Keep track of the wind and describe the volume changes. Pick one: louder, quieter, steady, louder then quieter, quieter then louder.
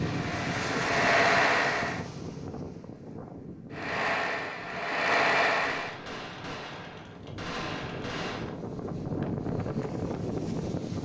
quieter then louder.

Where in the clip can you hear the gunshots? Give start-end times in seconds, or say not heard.
5.6-8.6.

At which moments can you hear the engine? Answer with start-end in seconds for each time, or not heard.
0.0-2.0, 3.7-6.0.